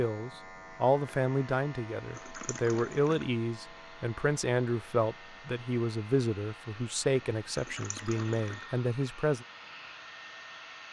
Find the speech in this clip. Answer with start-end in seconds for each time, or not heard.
0.0-9.4.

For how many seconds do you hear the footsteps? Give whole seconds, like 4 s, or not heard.
not heard.